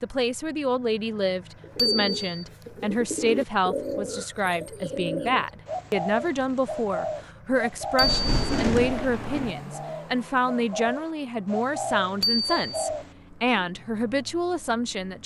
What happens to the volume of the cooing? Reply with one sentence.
The volume of the cooing stays about the same.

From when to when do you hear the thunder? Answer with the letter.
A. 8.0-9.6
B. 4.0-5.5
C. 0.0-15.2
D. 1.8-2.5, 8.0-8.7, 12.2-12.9
A.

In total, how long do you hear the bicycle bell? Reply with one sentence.
The bicycle bell can be heard for 2 seconds in total.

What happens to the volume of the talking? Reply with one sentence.
The volume of the talking stays about the same.